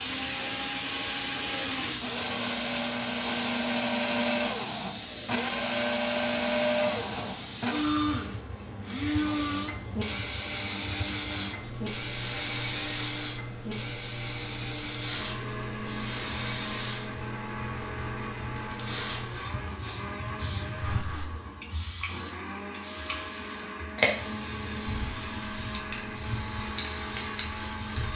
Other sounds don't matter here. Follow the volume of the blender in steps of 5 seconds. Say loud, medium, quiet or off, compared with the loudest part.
loud, loud, medium, medium, medium, medium.